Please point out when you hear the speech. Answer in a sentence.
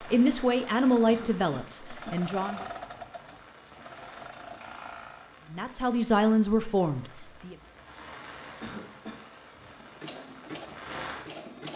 The speech can be heard from 0.0 to 2.6 s and from 5.5 to 7.5 s.